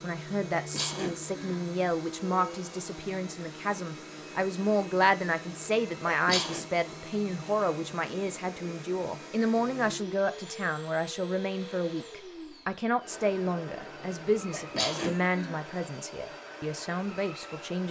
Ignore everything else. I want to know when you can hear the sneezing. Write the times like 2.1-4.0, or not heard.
0.6-1.6, 6.0-6.7, 14.5-15.6.